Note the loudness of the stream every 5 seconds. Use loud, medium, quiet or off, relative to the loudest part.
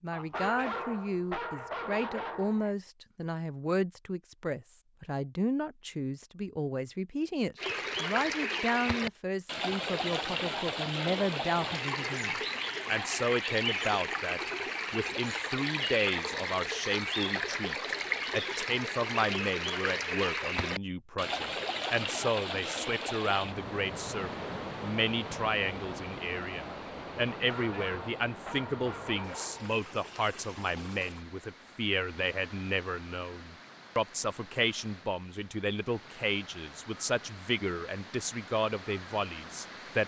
off, loud, loud, loud, loud, medium, quiet, quiet.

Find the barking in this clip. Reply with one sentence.
You can hear the barking from 0.1 to 2.8 s and from 27.3 to 29.8 s.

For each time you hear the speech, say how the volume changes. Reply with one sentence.
The speech can be heard from 0.0 to 40.0 s, at a steady volume.